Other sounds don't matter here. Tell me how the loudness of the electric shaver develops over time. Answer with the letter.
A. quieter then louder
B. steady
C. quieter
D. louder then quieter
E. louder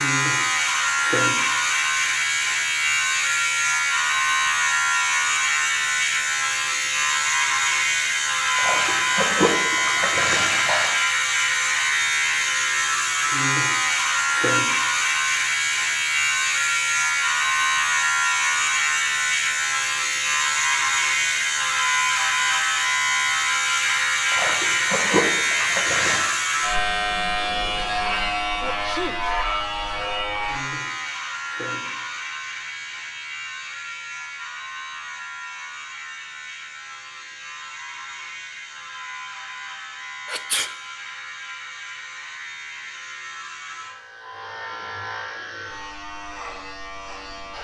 C.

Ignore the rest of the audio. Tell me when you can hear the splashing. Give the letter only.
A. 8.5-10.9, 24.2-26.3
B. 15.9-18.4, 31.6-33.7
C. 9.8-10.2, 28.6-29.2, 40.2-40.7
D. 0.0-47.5
A.